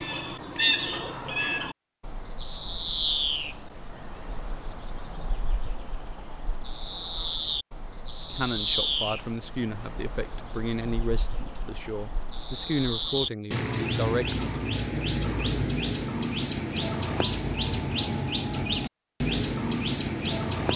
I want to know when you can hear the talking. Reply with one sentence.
You can hear the talking from 8.3 to 14.4 s.